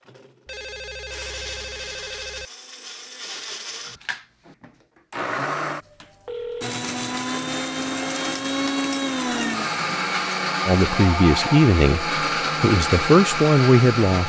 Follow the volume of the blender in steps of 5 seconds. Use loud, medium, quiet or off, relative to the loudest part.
quiet, loud, loud.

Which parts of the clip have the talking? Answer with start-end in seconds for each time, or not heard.
10.7-14.2.